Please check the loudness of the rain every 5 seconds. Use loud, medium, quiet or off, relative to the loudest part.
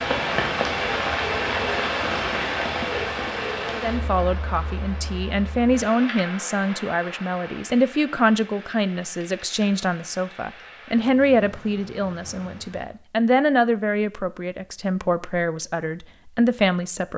loud, quiet, quiet, off.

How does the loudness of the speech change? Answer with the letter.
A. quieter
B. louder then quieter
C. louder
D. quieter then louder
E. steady
E.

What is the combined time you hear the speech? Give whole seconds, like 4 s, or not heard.
13 s.